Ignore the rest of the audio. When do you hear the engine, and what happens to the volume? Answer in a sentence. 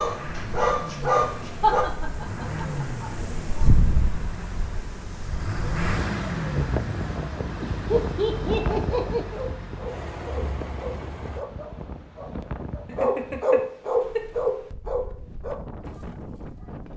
You can hear the engine from 0.0 to 11.4 s, getting louder then quieter.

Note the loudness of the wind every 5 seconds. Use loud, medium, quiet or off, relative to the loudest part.
loud, loud, medium, medium.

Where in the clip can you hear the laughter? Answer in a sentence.
The laughter can be heard from 1.6 to 3.6 s, from 7.6 to 9.4 s and from 12.8 to 14.2 s.